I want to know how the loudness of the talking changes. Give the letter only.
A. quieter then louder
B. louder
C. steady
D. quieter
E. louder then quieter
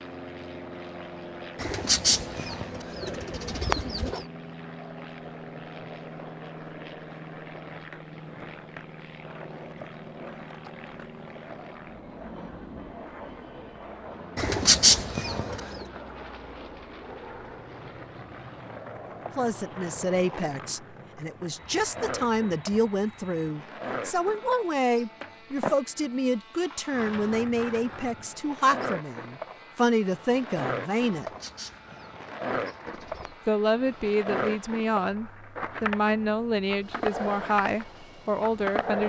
C.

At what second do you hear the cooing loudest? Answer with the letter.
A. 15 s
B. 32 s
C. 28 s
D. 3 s
A.